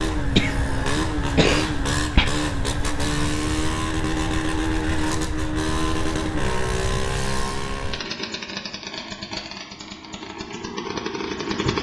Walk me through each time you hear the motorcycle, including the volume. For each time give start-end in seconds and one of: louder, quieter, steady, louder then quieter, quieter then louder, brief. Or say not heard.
0.0-11.7 quieter.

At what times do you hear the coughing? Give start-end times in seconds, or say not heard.
0.3-2.3.